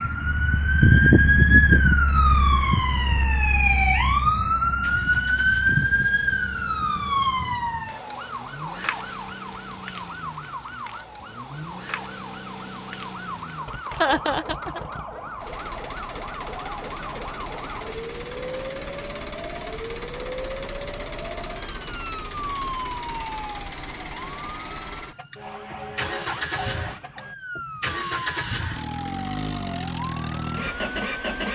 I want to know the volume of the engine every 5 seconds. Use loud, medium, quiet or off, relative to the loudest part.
quiet, quiet, medium, medium, medium, loud, loud.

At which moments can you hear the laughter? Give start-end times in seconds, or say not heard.
13.9-14.8.